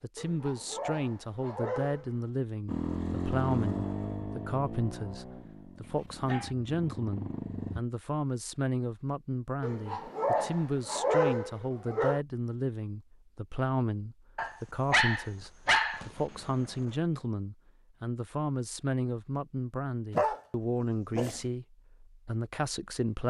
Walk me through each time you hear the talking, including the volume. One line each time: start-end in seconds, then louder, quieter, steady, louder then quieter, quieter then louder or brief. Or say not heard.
0.0-23.2 steady.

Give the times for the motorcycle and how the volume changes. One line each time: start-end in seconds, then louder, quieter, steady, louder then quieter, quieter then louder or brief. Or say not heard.
2.6-7.8 quieter then louder.